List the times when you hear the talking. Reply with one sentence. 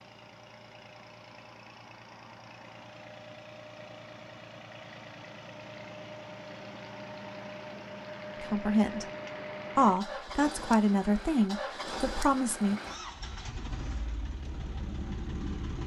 You can hear the talking from 8.4 to 9.1 s and from 9.8 to 12.8 s.